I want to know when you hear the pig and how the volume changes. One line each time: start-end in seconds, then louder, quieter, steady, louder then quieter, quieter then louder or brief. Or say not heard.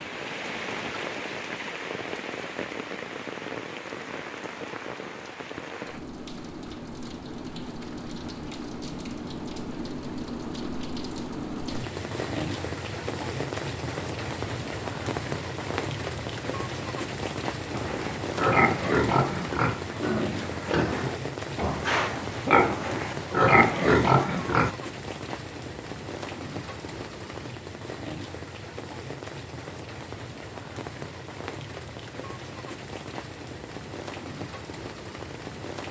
17.7-24.8 quieter then louder.